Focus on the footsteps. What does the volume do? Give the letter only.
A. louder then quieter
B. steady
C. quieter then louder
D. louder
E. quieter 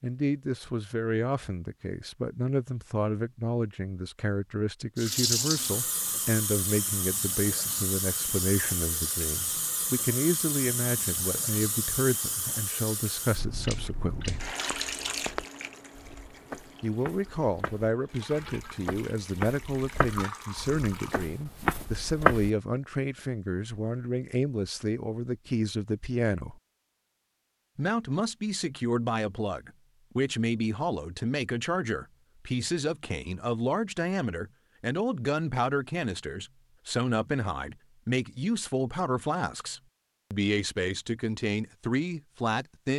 D.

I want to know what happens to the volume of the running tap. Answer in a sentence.
The loudness of the running tap goes down.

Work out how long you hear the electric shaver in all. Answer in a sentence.
You can't hear the electric shaver here.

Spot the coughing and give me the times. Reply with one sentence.
The coughing can't be heard in this clip.